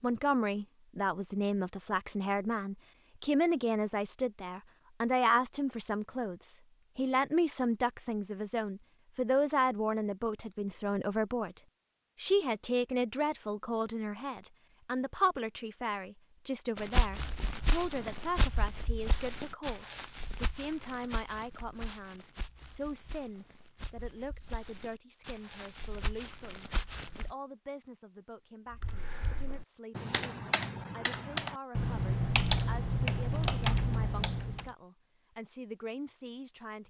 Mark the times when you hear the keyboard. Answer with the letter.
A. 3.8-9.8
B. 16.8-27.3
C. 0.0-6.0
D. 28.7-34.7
D.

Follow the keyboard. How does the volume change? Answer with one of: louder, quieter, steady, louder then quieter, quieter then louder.
louder.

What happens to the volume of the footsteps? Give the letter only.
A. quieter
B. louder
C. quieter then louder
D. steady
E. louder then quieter
C.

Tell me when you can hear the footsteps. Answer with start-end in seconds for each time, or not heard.
16.8-27.3.